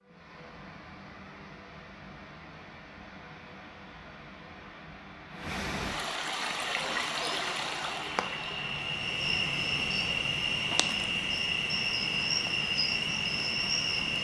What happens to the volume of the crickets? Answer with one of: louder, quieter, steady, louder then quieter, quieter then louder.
louder.